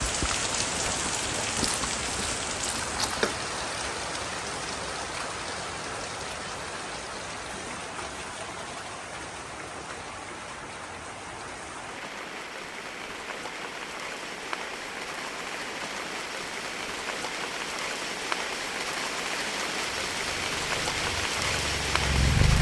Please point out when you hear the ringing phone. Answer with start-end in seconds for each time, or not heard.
not heard.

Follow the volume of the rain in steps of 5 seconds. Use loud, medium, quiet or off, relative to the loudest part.
loud, medium, medium, loud, loud.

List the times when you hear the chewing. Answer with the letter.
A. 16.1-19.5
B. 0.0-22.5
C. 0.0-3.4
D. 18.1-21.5
C.